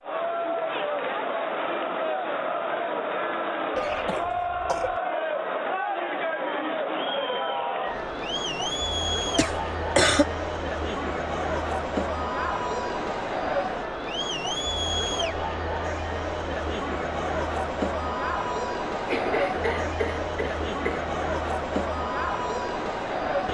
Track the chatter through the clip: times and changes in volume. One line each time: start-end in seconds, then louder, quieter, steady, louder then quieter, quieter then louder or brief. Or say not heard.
0.0-23.5 steady.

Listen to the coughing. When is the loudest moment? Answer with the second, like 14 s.
10 s.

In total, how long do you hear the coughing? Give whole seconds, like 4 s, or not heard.
4 s.